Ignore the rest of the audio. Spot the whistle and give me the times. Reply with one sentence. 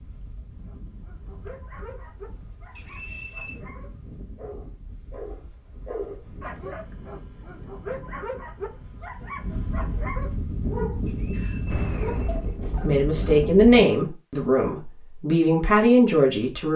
You can hear the whistle from 2.8 to 3.6 s and from 11.1 to 12.6 s.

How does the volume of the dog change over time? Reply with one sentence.
The loudness of the dog goes up.